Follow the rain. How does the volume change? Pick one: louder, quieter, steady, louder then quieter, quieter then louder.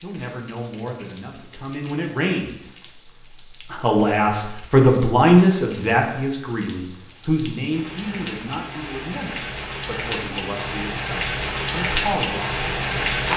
louder.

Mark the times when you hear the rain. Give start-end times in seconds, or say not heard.
0.0-13.3.